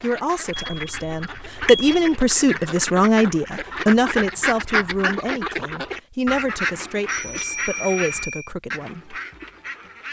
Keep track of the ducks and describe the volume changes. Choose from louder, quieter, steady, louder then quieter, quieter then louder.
louder then quieter.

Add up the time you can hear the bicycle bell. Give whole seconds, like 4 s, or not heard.
3 s.